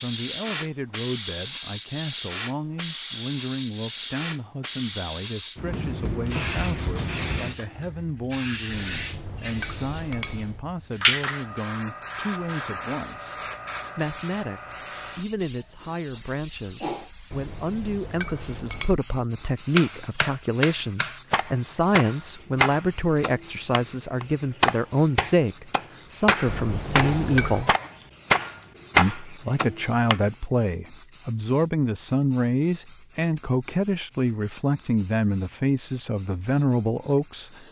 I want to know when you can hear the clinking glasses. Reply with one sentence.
You can hear the clinking glasses from 8.7 to 10.6 s, from 17.3 to 18.9 s and from 26.4 to 27.6 s.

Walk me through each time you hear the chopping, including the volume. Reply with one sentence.
The chopping can be heard from 19.8 to 30.2 s, getting louder.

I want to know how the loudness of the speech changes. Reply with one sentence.
The volume of the speech goes up.